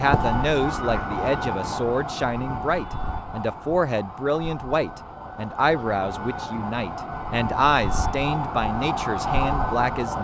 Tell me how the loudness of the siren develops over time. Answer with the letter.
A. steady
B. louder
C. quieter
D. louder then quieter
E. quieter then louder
E.